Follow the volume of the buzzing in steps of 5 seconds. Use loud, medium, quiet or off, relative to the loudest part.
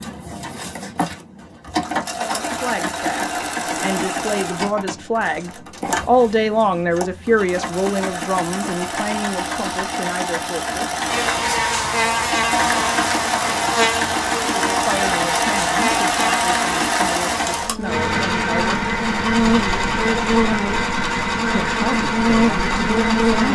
off, off, loud, loud, loud.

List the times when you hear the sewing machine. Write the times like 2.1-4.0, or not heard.
0.0-23.5.